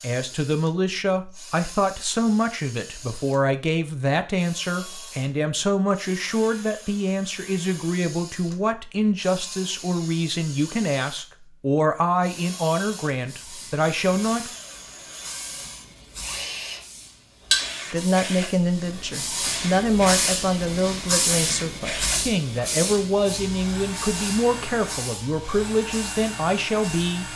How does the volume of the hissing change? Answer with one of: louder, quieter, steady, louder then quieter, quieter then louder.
louder then quieter.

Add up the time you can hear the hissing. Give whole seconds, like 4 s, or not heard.
14 s.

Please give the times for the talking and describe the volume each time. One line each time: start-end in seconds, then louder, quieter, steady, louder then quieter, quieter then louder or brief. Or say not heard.
0.0-14.5 steady
17.9-27.3 steady.